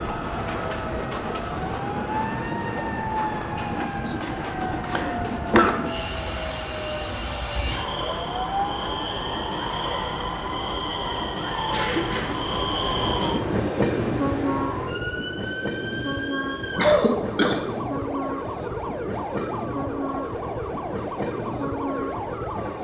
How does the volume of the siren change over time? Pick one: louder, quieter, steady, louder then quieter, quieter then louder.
steady.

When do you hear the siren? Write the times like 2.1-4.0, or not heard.
0.0-22.7.